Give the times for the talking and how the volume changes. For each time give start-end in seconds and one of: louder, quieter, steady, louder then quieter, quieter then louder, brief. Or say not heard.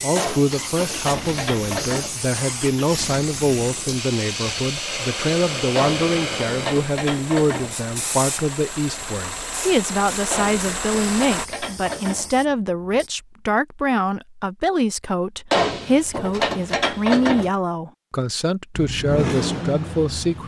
0.0-20.4 steady.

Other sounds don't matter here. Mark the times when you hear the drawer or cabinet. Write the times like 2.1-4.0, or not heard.
not heard.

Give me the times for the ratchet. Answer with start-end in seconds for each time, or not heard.
0.1-2.1, 5.8-7.8, 10.3-12.3, 15.5-17.5.